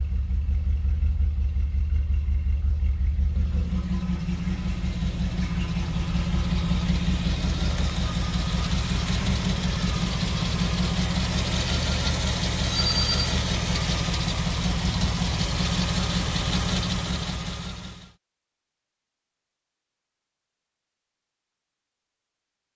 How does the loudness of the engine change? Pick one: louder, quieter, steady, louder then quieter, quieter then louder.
louder.